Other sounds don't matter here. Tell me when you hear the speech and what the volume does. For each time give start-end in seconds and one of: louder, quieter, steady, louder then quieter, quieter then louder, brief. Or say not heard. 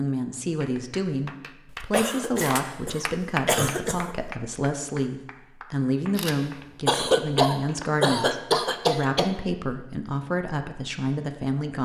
0.0-11.8 steady.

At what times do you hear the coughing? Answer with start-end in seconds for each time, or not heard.
1.8-4.2, 6.8-9.3.